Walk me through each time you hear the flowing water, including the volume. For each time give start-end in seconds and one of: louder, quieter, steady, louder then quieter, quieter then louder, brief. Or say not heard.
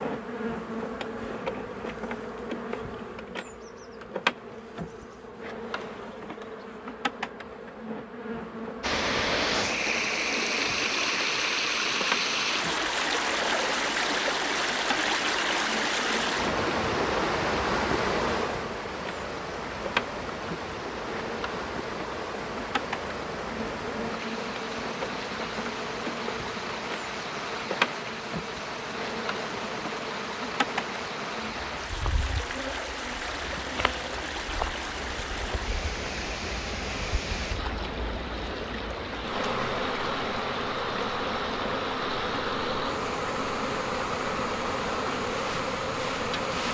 8.8-46.7 quieter.